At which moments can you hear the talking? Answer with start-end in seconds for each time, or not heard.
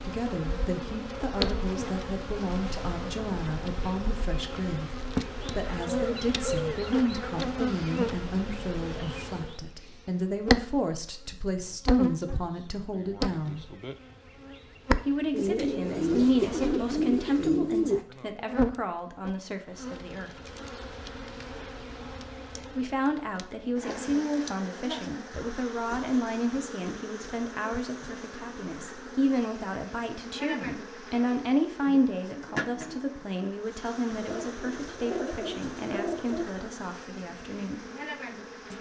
0.0-13.8, 15.1-20.3, 22.8-37.9.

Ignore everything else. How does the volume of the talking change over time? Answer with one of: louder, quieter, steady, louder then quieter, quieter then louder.
steady.